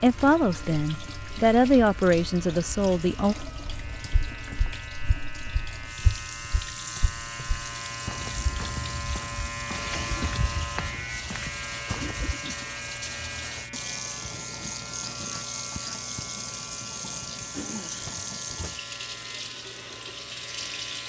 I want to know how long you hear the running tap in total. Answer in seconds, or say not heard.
21 s.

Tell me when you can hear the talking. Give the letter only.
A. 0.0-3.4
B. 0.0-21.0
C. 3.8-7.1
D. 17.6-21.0
A.